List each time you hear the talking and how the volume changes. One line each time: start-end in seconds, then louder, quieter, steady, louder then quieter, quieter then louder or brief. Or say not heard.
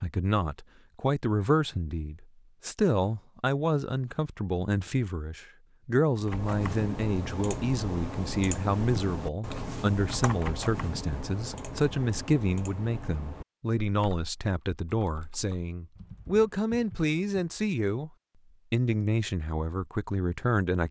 0.0-18.1 steady
18.7-20.8 brief.